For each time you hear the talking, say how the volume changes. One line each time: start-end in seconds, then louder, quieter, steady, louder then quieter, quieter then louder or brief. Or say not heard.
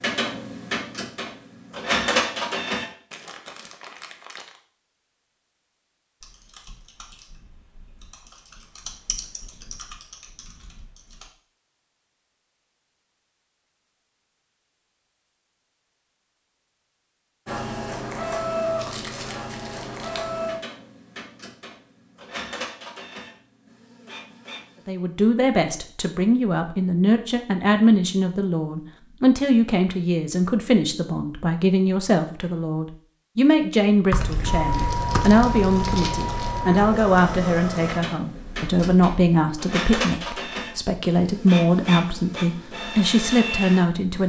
24.9-44.2 steady.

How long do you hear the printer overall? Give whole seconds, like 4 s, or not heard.
20 s.